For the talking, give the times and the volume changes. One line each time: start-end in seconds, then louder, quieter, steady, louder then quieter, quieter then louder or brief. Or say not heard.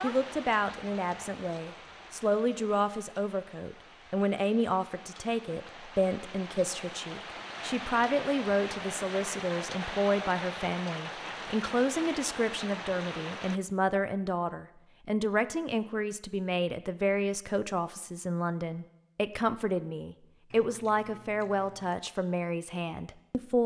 0.0-23.6 steady.